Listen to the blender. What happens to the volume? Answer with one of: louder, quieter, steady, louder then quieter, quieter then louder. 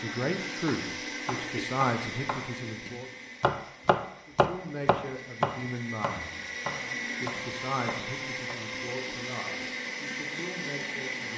quieter then louder.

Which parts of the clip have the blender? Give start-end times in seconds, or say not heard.
0.0-11.3.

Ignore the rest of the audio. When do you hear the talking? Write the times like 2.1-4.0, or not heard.
0.0-3.1, 4.2-6.5, 7.2-11.3.